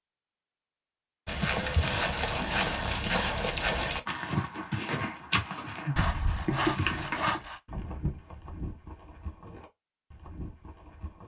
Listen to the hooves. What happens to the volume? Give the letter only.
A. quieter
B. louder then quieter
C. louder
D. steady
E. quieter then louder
A.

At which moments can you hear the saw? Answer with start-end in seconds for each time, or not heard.
1.8-3.4, 6.0-7.6.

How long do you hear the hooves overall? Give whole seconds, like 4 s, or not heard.
10 s.